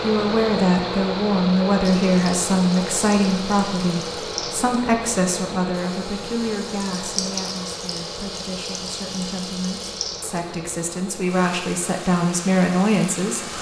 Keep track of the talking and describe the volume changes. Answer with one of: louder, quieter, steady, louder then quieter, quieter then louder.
quieter then louder.